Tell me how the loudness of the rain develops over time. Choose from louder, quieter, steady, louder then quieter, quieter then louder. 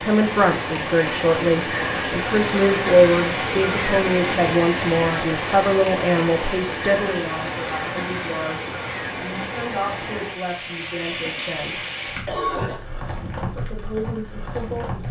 quieter.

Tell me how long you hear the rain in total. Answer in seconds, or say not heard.
15 s.